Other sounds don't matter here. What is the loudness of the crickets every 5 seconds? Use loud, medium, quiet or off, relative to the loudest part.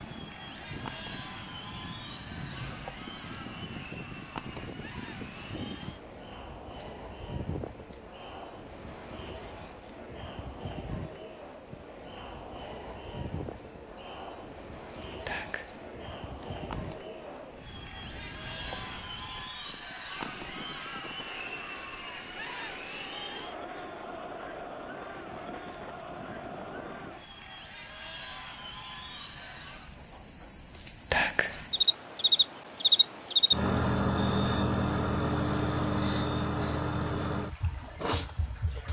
quiet, quiet, quiet, quiet, quiet, quiet, loud, loud.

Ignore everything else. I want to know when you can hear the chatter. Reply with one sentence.
You can hear the chatter from 0.0 to 30.1 s.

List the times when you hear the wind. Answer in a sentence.
You can hear the wind from 0.0 to 27.1 s.